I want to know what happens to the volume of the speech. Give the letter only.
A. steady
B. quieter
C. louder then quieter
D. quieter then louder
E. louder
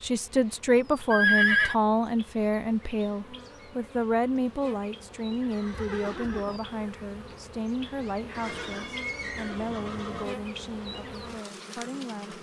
B.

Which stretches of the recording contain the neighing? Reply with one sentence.
The neighing can be heard from 1.1 to 1.8 s, from 5.4 to 6.6 s and from 8.3 to 10.3 s.